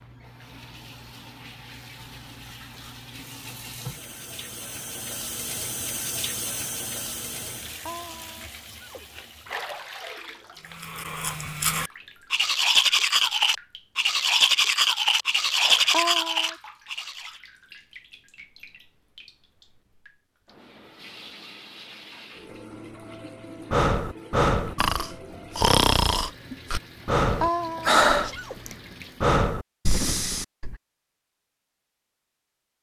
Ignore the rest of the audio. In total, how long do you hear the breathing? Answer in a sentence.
The breathing can be heard for 7 seconds in total.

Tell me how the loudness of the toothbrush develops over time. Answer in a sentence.
The volume of the toothbrush goes up.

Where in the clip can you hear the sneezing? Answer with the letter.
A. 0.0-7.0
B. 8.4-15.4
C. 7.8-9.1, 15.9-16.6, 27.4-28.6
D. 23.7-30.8
C.